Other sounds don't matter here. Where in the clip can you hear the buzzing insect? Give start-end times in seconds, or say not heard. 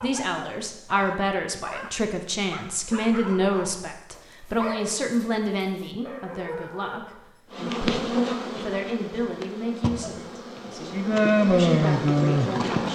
7.5-12.8.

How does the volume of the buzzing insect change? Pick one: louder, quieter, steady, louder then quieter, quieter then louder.
quieter then louder.